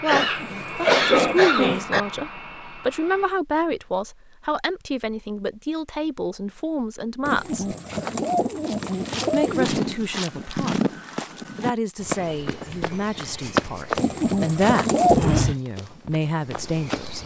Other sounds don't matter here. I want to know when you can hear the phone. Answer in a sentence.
You can't hear the phone here.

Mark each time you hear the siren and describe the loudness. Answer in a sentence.
You can't hear the siren here.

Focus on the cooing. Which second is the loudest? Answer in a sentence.
The volume of the cooing peaks at 15 seconds.